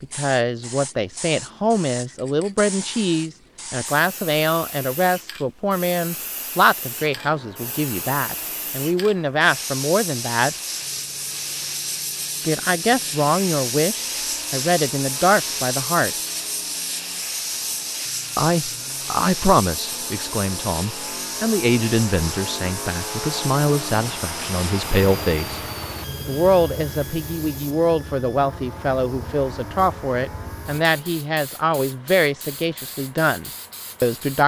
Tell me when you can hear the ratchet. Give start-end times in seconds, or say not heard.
not heard.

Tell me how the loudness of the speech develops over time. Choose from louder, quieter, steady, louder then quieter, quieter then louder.
steady.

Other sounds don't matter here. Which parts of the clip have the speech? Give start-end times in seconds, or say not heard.
0.0-10.6, 12.4-16.1, 18.4-25.6, 26.2-34.4.